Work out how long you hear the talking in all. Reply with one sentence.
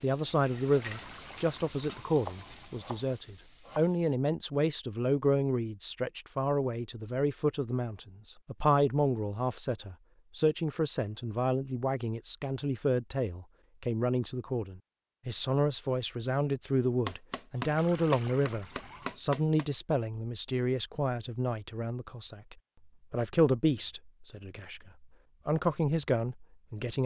You can hear the talking for 27 seconds altogether.